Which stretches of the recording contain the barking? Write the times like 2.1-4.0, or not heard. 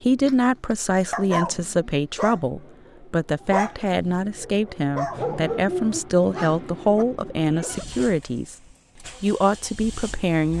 0.2-7.0.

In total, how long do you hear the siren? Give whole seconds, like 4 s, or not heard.
not heard.